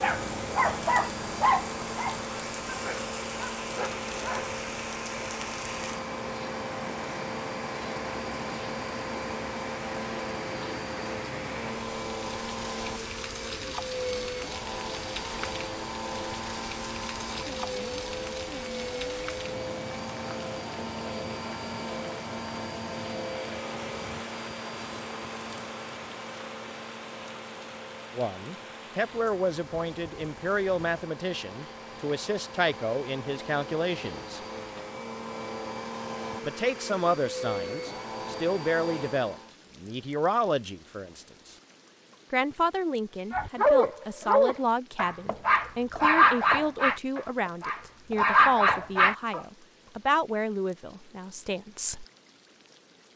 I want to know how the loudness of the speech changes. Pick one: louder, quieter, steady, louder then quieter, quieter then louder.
steady.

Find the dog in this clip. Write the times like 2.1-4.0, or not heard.
0.0-4.6, 43.3-49.4.